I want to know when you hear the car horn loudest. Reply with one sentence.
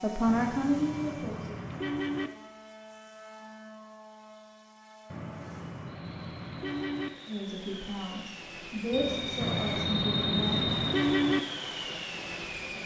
The loudest moment of the car horn is at 11 seconds.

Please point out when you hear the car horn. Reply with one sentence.
You can hear the car horn from 0.2 to 2.3 s, from 5.1 to 7.1 s and from 9.4 to 11.4 s.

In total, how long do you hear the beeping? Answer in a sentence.
You can hear the beeping for 2 seconds altogether.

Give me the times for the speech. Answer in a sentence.
You can hear the speech from 0.0 to 1.6 s and from 7.2 to 10.7 s.